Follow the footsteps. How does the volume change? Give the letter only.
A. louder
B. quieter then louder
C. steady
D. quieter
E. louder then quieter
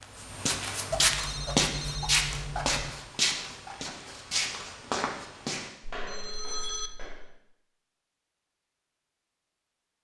D.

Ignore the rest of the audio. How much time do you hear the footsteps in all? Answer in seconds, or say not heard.
7 s.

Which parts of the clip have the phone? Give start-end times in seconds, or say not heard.
0.9-2.9, 6.0-6.9.